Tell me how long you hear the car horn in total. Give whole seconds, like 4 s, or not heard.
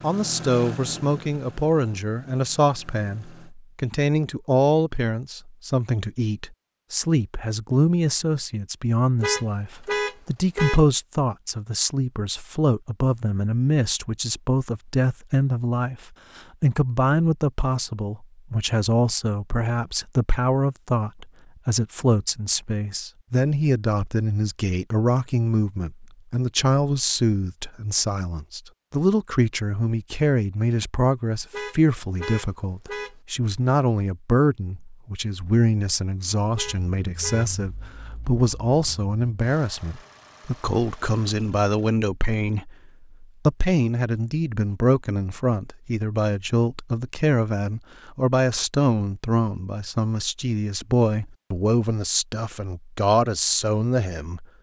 4 s.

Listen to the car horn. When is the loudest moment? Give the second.
10 s.